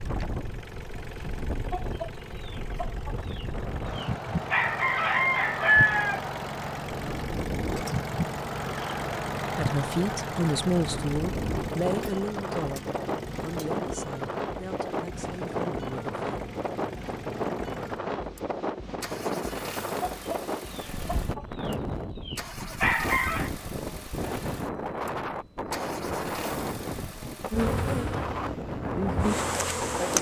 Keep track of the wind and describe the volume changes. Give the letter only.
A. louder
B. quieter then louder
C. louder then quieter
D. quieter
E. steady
E.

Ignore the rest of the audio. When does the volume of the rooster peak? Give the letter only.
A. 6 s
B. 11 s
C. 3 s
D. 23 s
A.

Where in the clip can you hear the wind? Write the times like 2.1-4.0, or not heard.
0.0-30.1.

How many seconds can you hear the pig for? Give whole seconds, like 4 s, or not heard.
not heard.